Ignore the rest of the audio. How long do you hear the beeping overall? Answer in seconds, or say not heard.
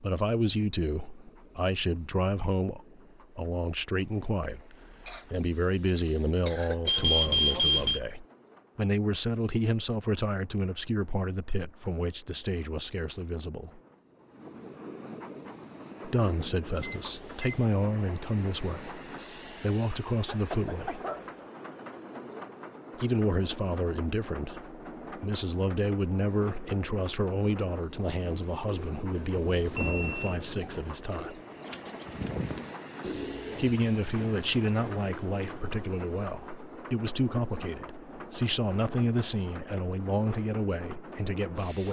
3 s.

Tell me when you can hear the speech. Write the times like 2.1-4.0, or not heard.
0.0-13.8, 16.1-21.0, 22.9-31.4, 33.5-41.8.